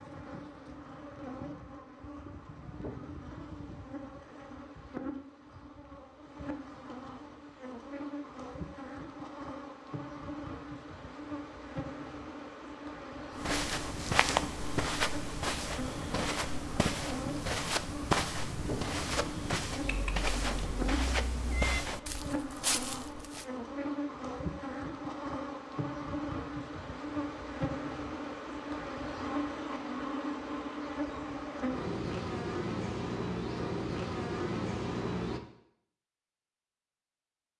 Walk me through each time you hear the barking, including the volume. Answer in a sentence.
You can't hear the barking here.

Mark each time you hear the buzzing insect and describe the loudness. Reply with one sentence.
You can hear the buzzing insect from 0.0 to 35.4 s, getting louder.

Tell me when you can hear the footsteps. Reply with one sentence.
You can hear the footsteps from 13.3 to 23.4 s.